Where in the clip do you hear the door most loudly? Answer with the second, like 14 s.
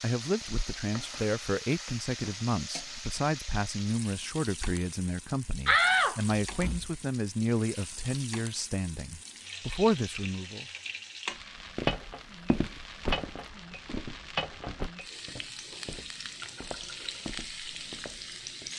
6 s.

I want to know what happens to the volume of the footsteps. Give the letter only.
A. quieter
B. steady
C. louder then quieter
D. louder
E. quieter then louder
A.